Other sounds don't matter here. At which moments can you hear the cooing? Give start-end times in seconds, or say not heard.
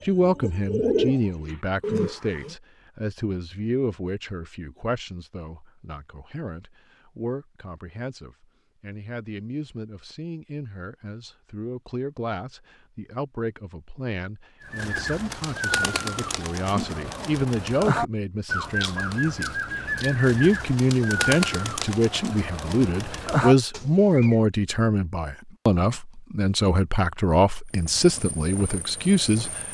0.0-2.5, 14.6-24.4.